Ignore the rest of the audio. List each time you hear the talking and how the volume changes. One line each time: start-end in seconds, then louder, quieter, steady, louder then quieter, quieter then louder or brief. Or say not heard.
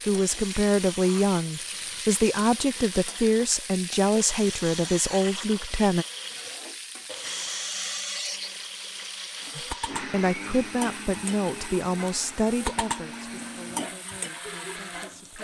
0.1-6.0 steady
9.6-15.3 quieter.